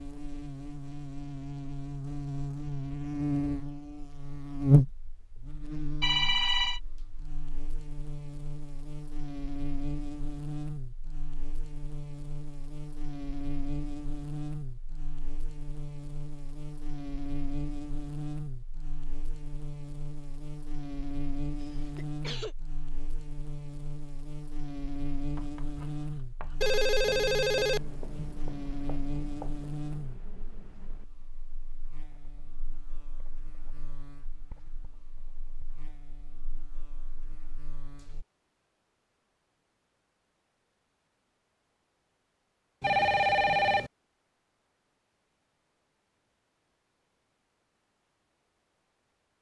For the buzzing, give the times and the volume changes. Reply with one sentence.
The buzzing can be heard from 0.0 to 38.2 s, getting quieter.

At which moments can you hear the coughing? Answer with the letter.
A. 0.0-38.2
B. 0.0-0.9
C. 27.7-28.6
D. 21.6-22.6
D.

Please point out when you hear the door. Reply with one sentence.
You can't hear the door here.